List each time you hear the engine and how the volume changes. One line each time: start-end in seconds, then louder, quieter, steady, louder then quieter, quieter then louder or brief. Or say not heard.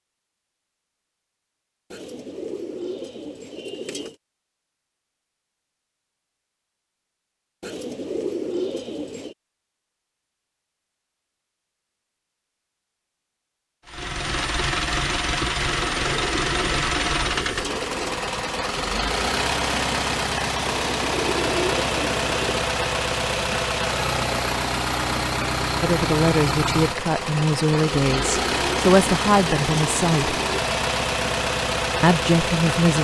13.8-32.9 steady.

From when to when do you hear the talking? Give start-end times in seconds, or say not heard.
25.8-30.4, 32.0-32.9.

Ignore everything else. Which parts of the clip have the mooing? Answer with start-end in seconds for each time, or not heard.
not heard.